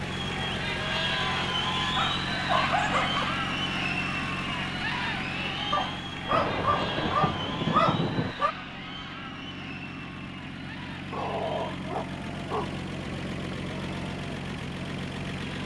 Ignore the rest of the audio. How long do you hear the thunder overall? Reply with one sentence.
You can hear the thunder for 2 seconds altogether.